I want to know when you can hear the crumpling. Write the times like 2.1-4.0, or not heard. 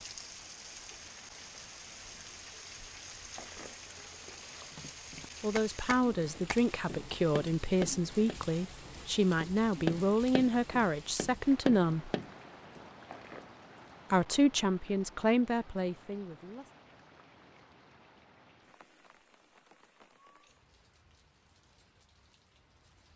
3.4-4.8, 13.1-13.6.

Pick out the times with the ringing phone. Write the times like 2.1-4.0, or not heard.
not heard.